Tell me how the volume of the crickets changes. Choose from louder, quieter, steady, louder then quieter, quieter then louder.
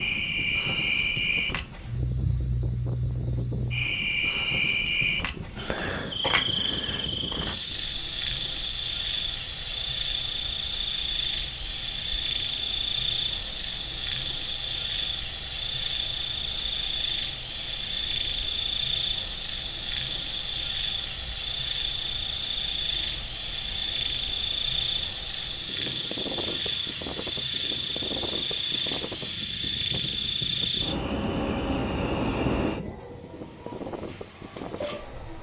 steady.